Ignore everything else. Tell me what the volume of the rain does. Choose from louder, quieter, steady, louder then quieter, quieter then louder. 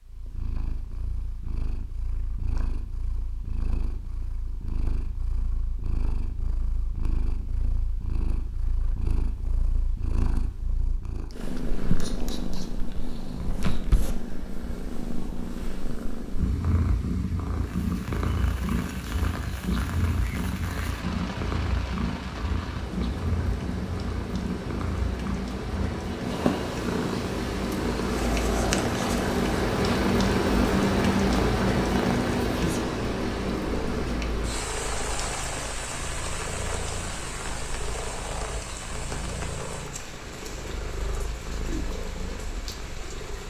louder then quieter.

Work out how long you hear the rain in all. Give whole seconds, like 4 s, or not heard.
26 s.